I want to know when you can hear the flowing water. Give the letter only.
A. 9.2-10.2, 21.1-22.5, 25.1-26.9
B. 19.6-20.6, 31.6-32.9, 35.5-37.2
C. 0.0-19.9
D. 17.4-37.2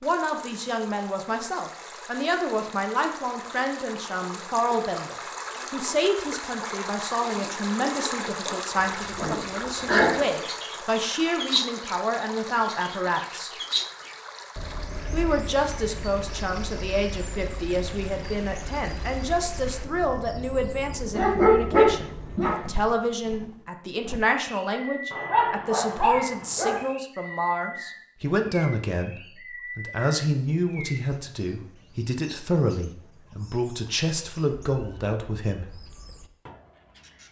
C.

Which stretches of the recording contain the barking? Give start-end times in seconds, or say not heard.
9.2-10.2, 21.1-22.5, 25.1-26.9.